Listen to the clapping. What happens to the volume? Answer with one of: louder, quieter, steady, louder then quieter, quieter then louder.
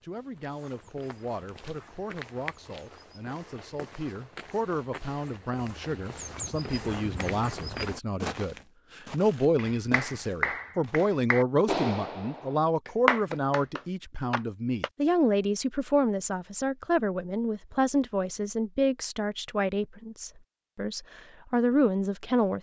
louder then quieter.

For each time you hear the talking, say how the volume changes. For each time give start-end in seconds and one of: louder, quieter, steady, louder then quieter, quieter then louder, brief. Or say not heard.
0.0-22.5 louder.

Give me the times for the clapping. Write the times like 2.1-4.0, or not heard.
9.6-14.9.